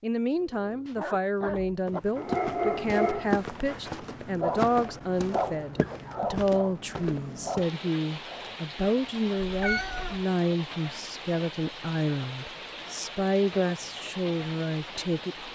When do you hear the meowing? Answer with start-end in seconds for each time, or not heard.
9.3-10.2.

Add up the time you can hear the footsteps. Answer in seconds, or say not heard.
6 s.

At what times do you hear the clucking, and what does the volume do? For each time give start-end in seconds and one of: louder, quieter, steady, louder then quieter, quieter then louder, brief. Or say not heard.
not heard.